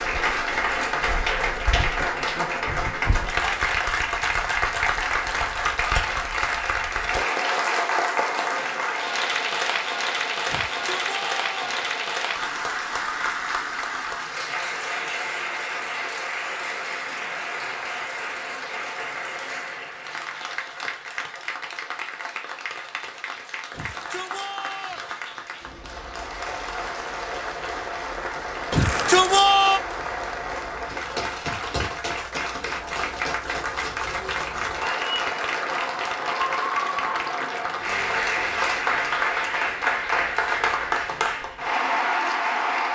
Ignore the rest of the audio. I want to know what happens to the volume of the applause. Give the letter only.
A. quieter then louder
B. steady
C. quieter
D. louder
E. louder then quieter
A.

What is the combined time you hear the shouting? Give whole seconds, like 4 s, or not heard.
4 s.